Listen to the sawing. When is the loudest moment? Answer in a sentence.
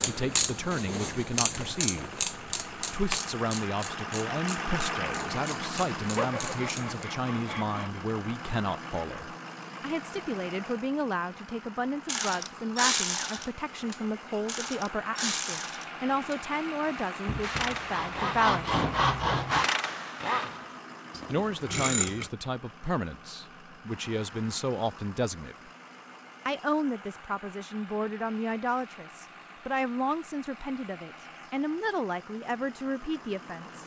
The loudest moment of the sawing is at 19 seconds.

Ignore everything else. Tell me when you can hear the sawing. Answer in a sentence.
The sawing can be heard from 6.2 to 8.0 s and from 17.2 to 19.6 s.